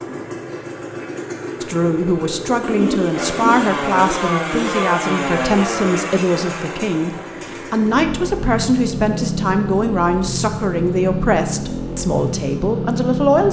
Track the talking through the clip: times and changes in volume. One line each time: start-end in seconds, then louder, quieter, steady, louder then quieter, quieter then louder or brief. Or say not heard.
1.6-13.4 steady.